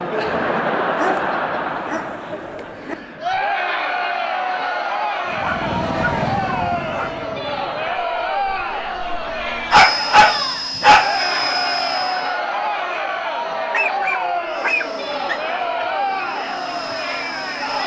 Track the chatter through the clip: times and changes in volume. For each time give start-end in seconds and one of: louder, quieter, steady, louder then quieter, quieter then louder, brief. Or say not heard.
0.0-17.8 steady.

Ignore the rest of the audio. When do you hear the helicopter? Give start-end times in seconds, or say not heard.
5.2-12.4, 14.4-17.8.